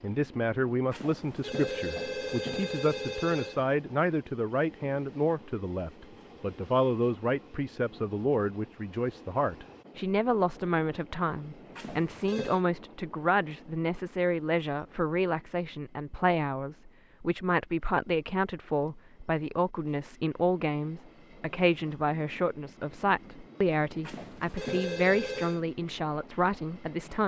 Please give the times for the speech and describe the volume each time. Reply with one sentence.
You can hear the speech from 0.0 to 27.2 s, at a steady volume.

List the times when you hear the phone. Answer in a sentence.
The phone can be heard from 0.9 to 3.6 s, from 11.8 to 12.6 s and from 24.1 to 25.6 s.